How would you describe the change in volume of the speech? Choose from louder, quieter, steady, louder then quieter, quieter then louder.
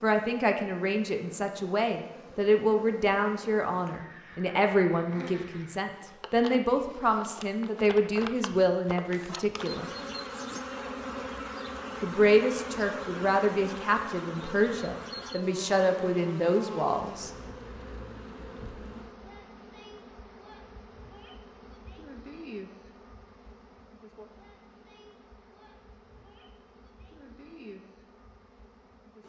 steady.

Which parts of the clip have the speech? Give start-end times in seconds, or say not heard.
0.0-9.9, 12.0-17.3.